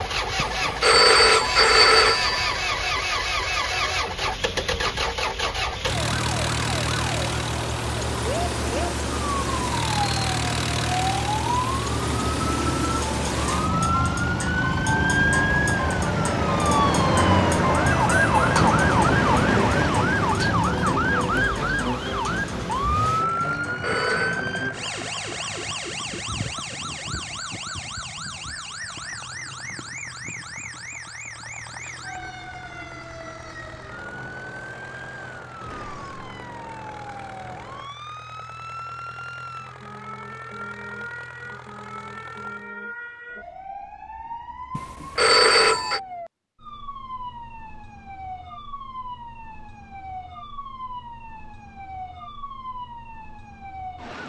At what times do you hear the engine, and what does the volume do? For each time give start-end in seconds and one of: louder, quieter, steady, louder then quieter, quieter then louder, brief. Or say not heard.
0.0-42.7 quieter.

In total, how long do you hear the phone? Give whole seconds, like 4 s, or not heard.
4 s.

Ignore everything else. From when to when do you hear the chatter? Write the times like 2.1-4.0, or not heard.
not heard.